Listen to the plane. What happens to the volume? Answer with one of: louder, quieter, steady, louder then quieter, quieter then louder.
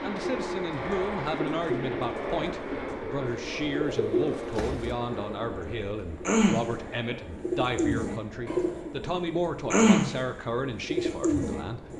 quieter.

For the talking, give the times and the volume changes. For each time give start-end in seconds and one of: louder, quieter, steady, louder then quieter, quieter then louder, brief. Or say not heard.
0.0-11.9 steady.